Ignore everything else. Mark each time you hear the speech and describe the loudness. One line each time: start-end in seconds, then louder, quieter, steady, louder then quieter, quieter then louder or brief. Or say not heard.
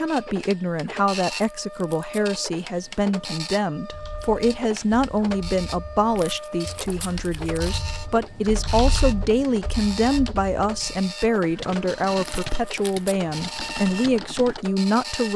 0.0-15.3 steady.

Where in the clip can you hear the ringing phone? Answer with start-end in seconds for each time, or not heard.
not heard.